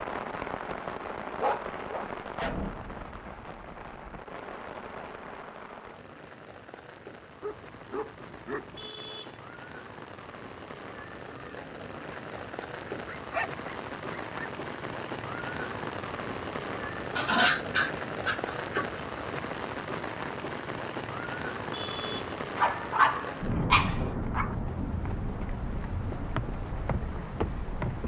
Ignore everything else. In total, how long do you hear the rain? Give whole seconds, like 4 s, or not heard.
28 s.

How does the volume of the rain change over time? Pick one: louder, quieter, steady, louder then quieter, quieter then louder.
quieter then louder.